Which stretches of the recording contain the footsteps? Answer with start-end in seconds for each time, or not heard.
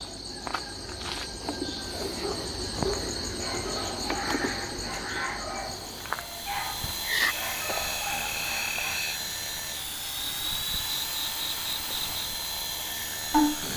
not heard.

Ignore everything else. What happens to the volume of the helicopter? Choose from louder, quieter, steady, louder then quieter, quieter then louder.
steady.